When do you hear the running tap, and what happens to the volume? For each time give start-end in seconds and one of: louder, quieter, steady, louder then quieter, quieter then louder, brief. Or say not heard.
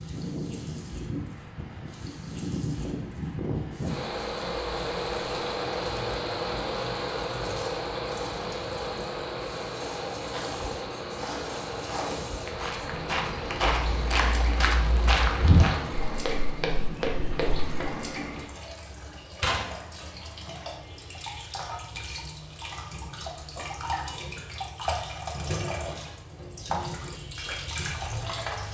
0.0-28.6 louder.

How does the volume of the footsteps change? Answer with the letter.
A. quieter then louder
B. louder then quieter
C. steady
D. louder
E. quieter
B.